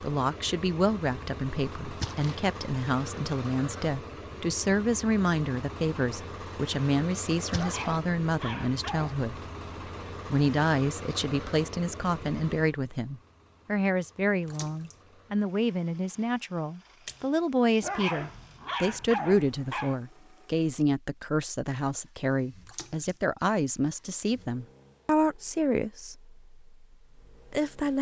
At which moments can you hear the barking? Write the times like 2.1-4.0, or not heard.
7.5-9.2, 17.8-19.9.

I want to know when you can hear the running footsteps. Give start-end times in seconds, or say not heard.
not heard.